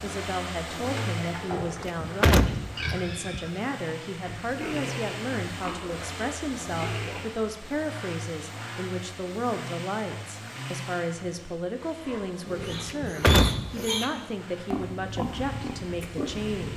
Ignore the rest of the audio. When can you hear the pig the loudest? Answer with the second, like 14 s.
13 s.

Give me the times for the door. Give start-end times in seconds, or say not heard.
1.6-3.4, 12.7-13.8.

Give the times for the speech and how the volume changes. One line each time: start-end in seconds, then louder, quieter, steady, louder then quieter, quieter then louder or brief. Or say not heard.
0.0-16.7 steady.